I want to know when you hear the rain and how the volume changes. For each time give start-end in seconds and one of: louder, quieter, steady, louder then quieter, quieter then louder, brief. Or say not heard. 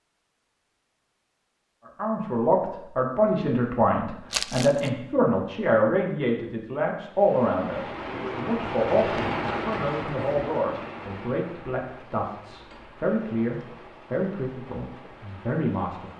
7.0-16.1 quieter.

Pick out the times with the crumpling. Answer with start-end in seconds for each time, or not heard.
4.3-4.9.